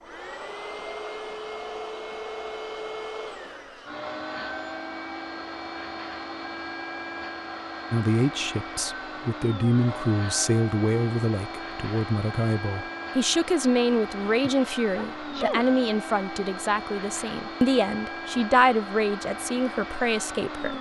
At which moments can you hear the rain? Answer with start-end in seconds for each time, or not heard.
not heard.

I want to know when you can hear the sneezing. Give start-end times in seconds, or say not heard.
14.4-15.7.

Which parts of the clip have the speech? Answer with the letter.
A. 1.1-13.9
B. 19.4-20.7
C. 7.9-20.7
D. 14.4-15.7
C.